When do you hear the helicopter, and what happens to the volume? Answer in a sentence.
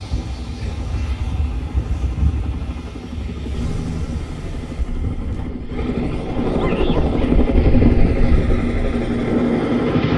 The helicopter can be heard from 0.0 to 10.1 s, getting louder.